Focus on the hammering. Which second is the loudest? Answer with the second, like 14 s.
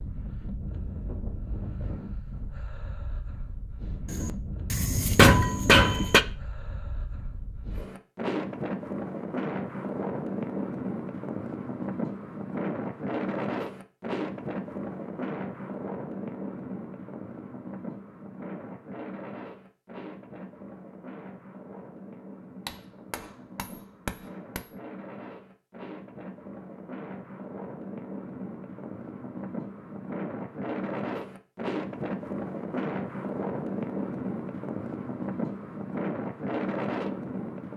5 s.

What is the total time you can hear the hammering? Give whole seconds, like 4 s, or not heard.
4 s.